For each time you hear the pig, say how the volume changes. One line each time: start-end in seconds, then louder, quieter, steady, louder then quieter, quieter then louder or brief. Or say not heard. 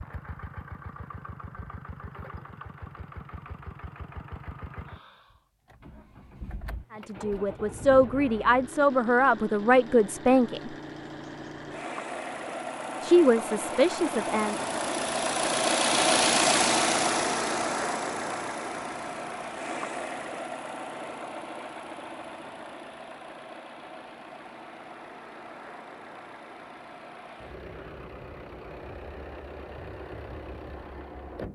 not heard.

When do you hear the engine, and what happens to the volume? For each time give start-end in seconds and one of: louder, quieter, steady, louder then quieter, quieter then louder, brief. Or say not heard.
0.0-31.5 louder then quieter.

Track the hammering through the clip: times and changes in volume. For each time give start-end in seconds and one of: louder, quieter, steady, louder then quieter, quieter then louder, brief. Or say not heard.
not heard.